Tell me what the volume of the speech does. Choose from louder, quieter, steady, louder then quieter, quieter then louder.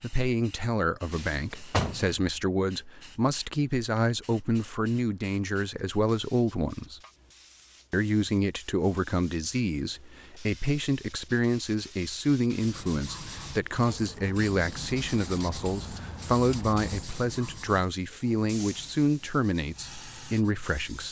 steady.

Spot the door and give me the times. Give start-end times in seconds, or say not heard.
1.1-2.1.